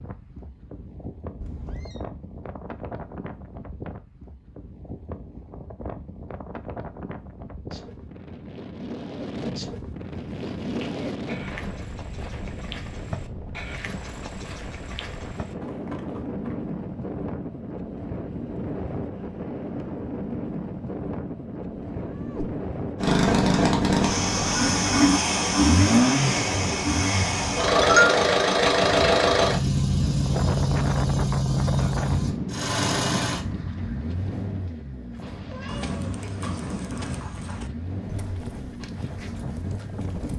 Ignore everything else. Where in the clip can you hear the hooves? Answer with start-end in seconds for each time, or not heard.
10.1-16.6, 35.1-40.3.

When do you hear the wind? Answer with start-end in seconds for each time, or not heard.
0.0-40.3.